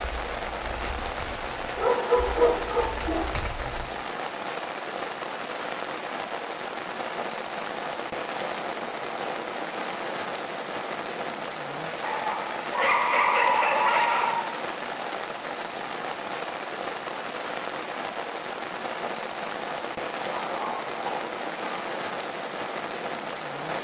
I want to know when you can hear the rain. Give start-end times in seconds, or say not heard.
0.0-23.8.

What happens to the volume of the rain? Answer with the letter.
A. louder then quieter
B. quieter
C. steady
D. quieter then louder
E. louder
C.